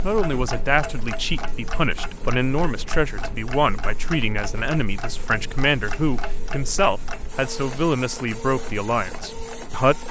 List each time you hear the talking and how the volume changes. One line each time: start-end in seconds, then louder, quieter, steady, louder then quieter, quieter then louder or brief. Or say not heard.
0.0-10.0 steady.